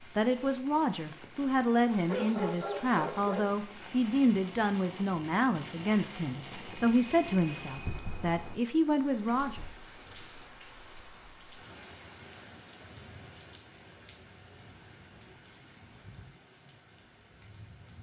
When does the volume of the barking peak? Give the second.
2 s.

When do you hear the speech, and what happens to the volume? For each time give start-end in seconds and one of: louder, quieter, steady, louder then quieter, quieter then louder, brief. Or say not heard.
0.0-9.7 steady.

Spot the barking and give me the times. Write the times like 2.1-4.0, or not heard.
1.9-3.5.